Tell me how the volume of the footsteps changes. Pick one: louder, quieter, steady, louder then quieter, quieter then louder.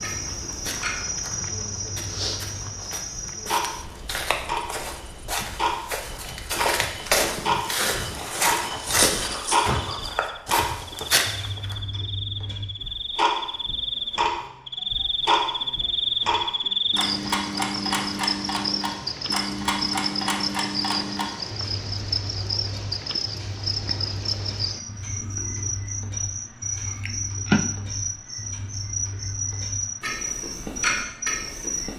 louder.